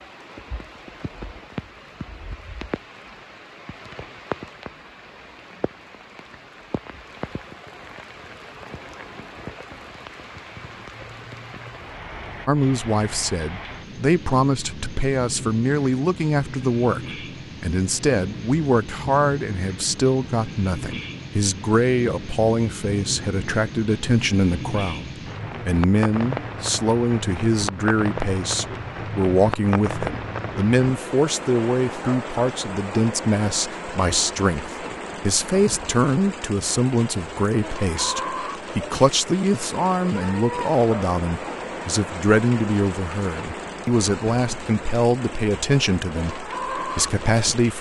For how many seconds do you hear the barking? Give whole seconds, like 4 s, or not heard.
not heard.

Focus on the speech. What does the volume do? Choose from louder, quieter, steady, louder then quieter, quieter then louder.
steady.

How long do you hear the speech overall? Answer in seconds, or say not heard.
35 s.